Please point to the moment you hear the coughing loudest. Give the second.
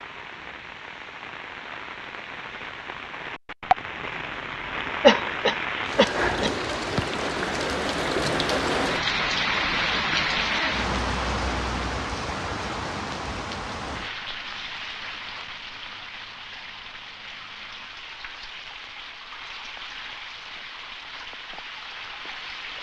5 s.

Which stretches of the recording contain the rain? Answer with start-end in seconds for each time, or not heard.
0.0-22.7.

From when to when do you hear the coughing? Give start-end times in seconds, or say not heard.
5.0-6.5.